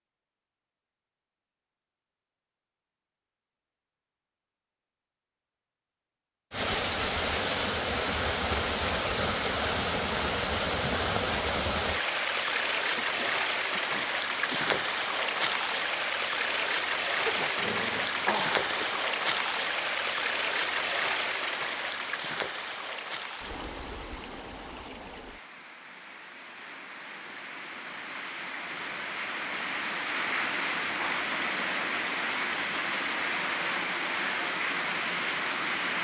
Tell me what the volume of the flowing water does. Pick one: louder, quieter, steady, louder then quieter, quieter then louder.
quieter then louder.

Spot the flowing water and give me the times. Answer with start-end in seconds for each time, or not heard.
6.5-35.9.